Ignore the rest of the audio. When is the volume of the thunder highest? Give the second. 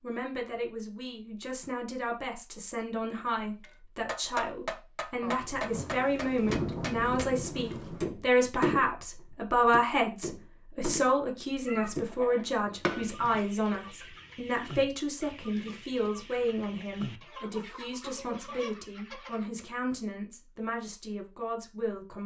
7 s.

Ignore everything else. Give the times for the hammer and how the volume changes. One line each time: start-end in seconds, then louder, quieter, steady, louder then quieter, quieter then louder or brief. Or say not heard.
3.6-8.9 quieter then louder
9.7-11.2 brief
11.9-13.4 brief.